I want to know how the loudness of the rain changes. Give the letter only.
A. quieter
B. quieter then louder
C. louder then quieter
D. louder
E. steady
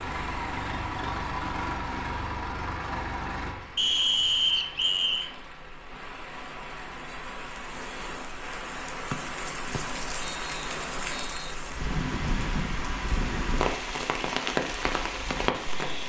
D.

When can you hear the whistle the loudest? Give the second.
4 s.